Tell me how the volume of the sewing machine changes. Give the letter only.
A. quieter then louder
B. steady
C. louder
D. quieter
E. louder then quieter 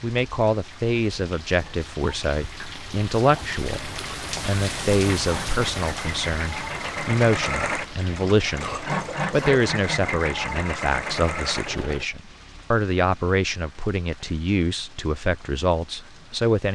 C.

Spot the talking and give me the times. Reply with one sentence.
The talking can be heard from 0.0 to 16.7 s.